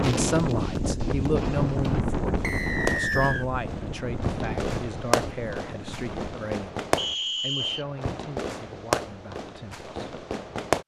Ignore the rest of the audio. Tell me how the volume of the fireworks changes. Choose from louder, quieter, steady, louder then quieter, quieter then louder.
louder.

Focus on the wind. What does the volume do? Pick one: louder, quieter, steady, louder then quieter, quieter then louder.
quieter.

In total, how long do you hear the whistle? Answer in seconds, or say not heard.
2 s.